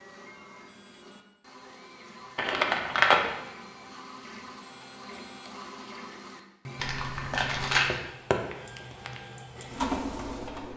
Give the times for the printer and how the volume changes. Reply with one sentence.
You can hear the printer from 0.0 to 10.7 s, getting louder.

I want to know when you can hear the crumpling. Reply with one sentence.
You can hear the crumpling from 2.4 to 3.2 s and from 6.8 to 7.8 s.